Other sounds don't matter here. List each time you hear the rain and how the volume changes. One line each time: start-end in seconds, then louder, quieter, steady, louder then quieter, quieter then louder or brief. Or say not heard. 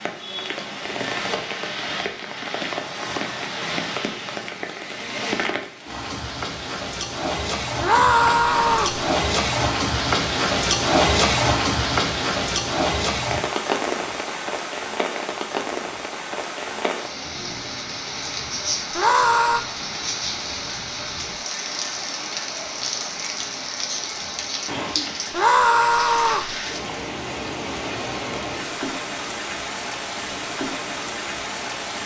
0.0-32.0 louder then quieter.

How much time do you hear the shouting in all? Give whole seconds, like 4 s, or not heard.
3 s.